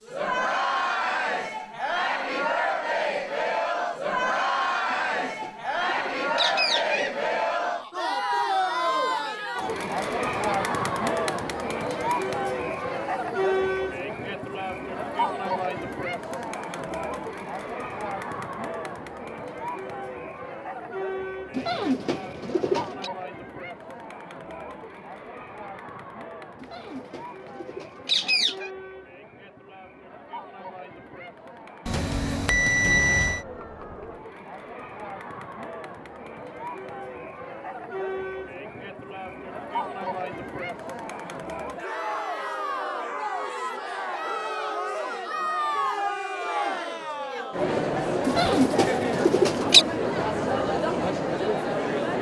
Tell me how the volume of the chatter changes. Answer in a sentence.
The volume of the chatter goes down, then up.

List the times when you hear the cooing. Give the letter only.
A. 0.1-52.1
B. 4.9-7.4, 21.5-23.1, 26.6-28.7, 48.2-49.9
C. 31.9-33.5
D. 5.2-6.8
B.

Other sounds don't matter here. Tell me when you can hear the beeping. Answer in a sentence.
The beeping can be heard from 31.9 to 33.5 s.